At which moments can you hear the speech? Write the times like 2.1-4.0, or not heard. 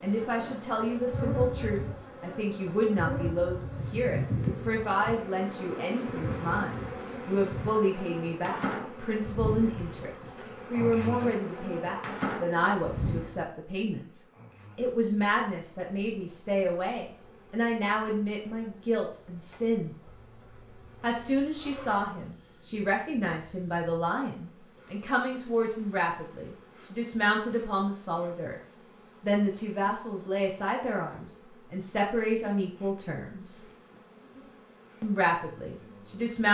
0.0-19.9, 21.0-28.6, 29.2-33.6, 35.0-36.4.